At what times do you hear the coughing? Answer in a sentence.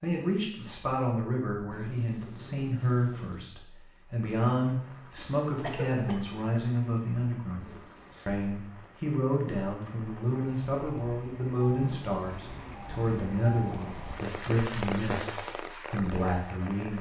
The coughing can be heard from 5.2 to 6.2 s.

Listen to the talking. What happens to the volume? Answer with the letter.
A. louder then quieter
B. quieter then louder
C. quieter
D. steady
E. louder
D.